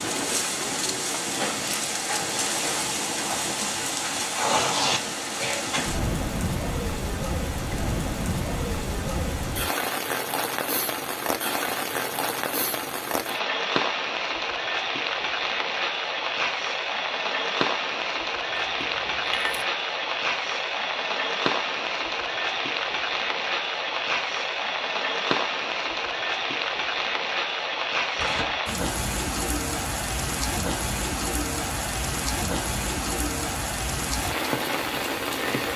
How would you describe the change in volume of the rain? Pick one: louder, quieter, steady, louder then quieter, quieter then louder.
steady.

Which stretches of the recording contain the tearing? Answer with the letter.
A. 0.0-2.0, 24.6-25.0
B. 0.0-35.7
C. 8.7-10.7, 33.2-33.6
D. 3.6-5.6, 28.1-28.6
D.